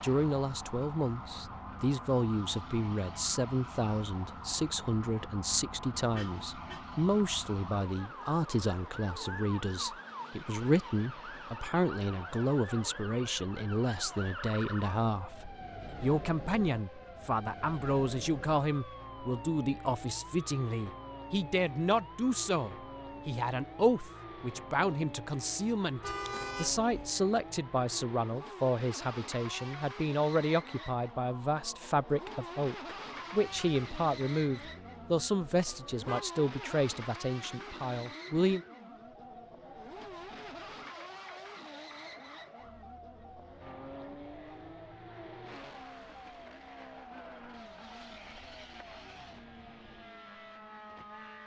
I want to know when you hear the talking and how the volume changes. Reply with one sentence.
The talking can be heard from 0.0 to 38.6 s, at a steady volume.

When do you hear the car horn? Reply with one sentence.
The car horn can be heard from 6.2 to 6.8 s, from 26.0 to 27.1 s and from 35.5 to 36.2 s.